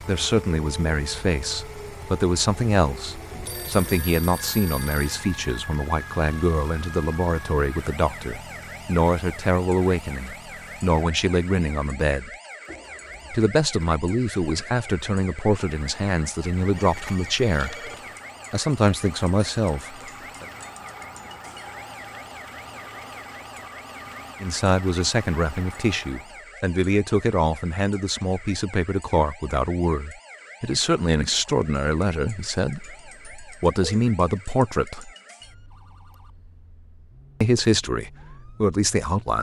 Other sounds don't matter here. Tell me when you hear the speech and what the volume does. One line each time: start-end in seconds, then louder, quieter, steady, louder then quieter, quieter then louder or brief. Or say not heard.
0.0-12.3 steady
13.3-17.9 steady
18.5-20.4 brief
24.4-35.1 steady
37.4-39.3 brief.